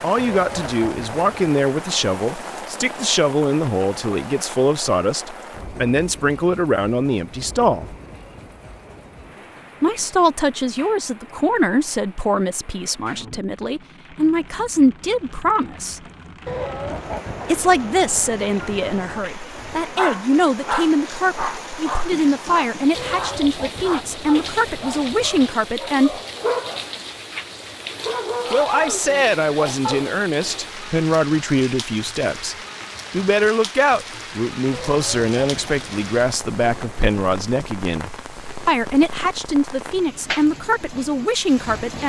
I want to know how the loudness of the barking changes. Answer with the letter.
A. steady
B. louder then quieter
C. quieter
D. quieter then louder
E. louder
D.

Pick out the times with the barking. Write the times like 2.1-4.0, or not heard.
19.8-30.3.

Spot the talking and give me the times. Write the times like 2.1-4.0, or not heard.
0.0-8.0, 9.8-16.0, 17.4-26.2, 28.5-42.0.